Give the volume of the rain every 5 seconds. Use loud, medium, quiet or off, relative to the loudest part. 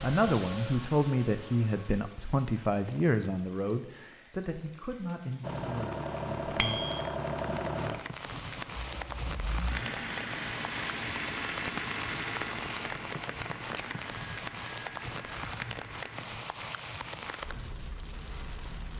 medium, loud, loud, loud.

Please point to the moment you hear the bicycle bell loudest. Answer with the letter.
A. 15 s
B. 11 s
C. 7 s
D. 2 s
C.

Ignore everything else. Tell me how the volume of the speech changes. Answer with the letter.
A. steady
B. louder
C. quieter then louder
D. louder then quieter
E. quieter
E.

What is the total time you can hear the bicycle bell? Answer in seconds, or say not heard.
2 s.